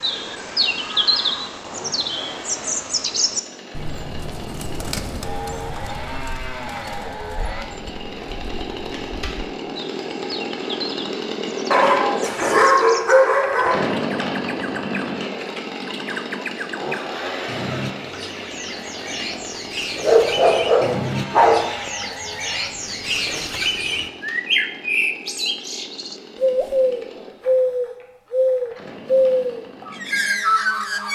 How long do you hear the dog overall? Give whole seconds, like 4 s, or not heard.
4 s.